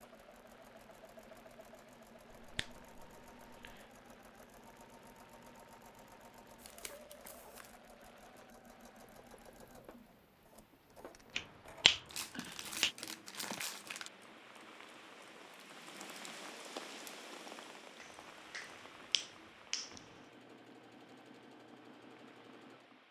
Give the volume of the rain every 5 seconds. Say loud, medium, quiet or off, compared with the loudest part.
quiet, quiet, medium, loud, quiet.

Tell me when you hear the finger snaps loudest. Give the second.
12 s.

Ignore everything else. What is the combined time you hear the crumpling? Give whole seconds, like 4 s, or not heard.
3 s.